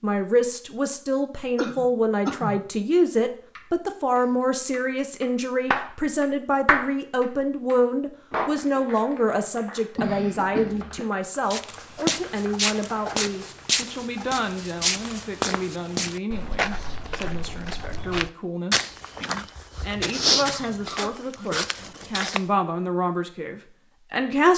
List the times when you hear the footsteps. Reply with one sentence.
The footsteps can be heard from 11.4 to 22.4 s.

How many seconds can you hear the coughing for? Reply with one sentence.
The coughing can be heard for 4 seconds in total.